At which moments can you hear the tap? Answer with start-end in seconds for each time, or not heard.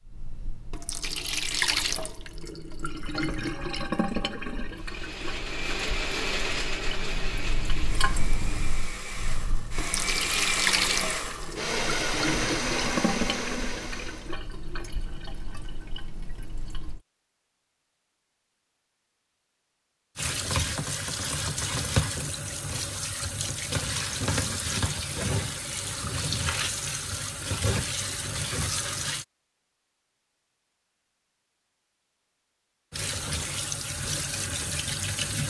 0.0-17.0, 20.1-29.2, 32.9-35.4.